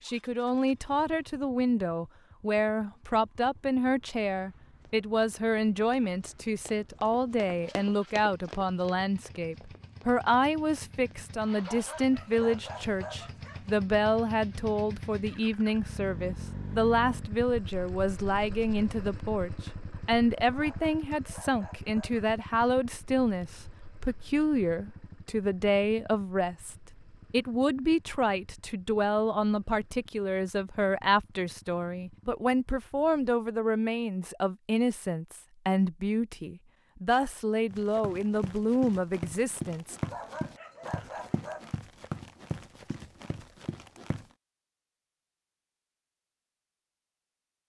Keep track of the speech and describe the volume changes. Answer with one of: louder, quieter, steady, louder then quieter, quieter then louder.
steady.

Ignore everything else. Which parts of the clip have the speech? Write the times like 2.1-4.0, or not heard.
0.1-40.0.